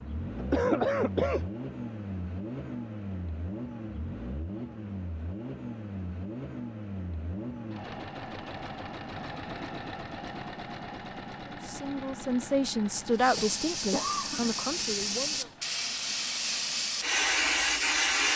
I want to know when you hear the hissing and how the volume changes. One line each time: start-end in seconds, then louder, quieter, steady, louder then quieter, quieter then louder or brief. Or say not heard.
13.1-18.3 louder.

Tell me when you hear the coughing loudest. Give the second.
1 s.